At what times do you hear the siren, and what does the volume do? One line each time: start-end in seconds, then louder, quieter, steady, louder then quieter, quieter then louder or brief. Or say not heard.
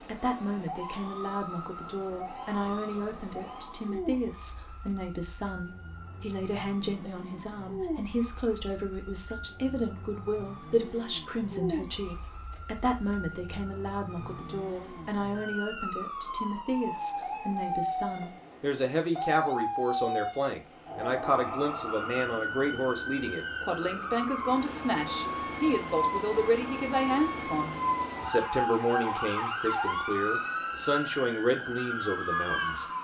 0.0-32.9 louder.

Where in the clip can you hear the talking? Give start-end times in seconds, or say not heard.
0.1-32.9.